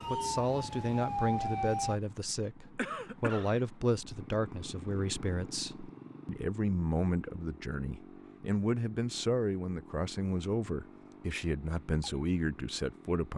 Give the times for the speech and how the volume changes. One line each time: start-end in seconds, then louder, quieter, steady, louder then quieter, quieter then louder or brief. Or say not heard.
0.1-13.3 steady.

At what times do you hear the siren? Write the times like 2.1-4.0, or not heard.
0.0-2.0.